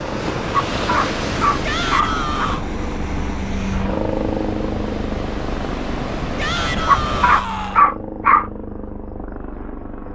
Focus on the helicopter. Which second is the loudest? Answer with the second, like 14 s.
4 s.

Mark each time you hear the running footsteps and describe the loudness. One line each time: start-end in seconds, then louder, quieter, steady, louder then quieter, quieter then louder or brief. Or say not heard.
not heard.